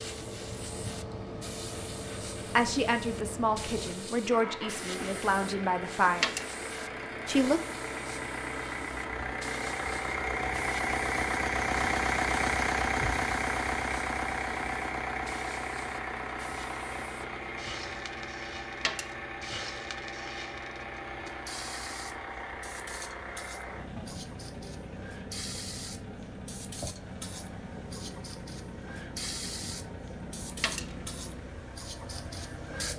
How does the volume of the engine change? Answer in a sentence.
The loudness of the engine goes up, then down.